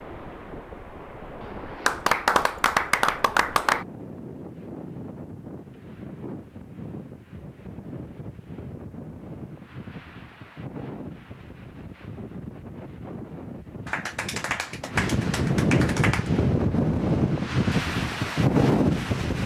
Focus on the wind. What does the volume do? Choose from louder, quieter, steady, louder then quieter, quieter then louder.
louder.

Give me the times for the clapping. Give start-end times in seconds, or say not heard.
1.9-3.9, 13.8-16.3.